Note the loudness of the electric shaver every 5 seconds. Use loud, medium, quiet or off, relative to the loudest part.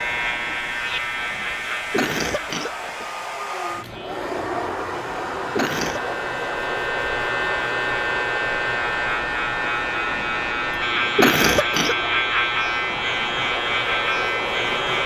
medium, loud, loud.